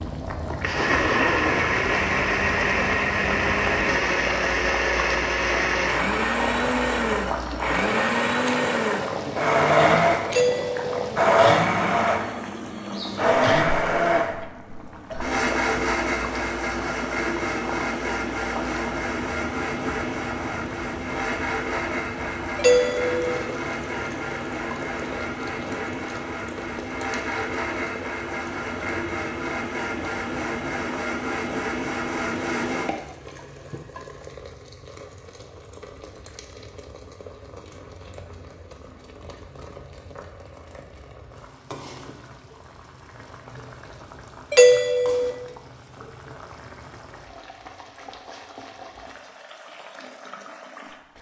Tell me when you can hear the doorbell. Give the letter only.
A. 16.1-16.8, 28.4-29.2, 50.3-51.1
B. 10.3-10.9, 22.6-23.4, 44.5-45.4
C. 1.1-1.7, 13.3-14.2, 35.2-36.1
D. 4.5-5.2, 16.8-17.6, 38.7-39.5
B.